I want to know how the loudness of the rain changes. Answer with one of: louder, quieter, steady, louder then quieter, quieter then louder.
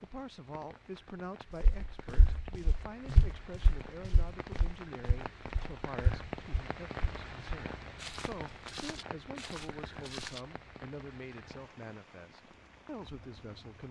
louder then quieter.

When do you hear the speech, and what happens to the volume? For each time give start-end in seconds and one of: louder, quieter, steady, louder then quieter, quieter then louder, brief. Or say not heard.
0.0-13.8 steady.